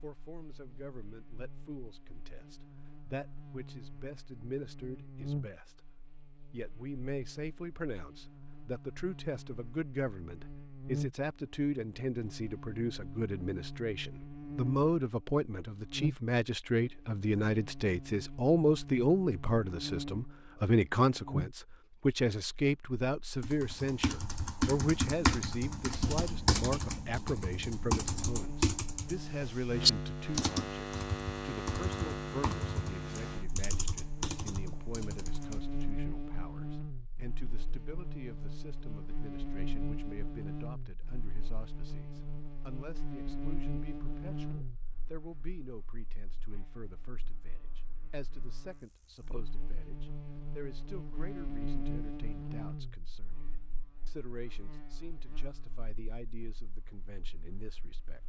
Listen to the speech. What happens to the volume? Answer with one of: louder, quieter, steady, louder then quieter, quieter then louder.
louder then quieter.